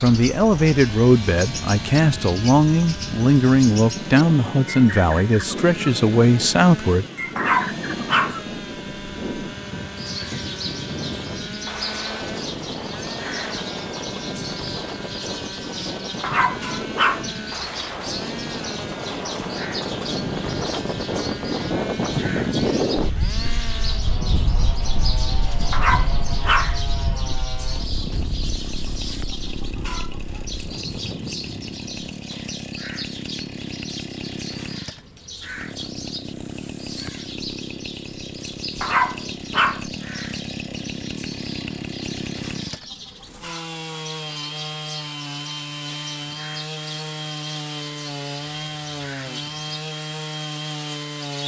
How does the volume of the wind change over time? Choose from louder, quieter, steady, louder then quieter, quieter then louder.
louder then quieter.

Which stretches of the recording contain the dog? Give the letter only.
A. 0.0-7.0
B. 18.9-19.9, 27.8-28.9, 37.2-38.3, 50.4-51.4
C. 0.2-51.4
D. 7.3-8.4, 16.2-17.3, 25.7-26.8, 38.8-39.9
D.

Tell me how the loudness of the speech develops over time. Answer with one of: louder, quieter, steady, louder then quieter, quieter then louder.
steady.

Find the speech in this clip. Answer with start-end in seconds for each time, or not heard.
0.0-7.0.